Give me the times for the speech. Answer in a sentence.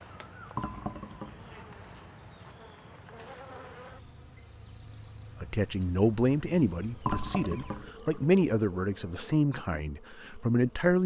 You can hear the speech from 5.4 to 11.0 s.